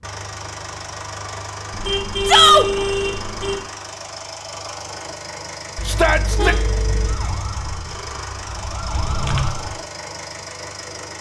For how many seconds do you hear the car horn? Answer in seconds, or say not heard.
3 s.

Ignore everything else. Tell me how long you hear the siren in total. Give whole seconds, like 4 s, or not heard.
3 s.